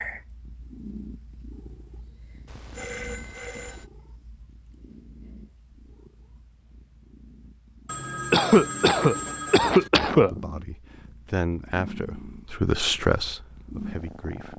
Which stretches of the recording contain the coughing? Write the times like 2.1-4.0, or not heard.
8.3-10.4.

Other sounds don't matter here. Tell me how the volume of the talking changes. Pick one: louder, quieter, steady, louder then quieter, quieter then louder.
louder then quieter.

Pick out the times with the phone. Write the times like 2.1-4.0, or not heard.
2.5-3.9, 7.8-9.9.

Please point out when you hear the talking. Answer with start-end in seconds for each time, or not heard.
10.1-14.5.